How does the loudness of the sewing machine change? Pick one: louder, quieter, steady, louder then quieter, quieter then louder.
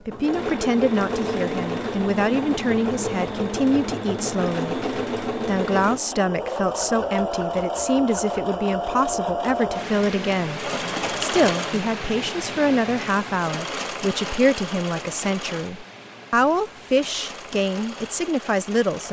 quieter.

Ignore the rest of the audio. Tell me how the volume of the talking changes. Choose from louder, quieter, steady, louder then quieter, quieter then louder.
steady.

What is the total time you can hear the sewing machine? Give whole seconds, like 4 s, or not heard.
19 s.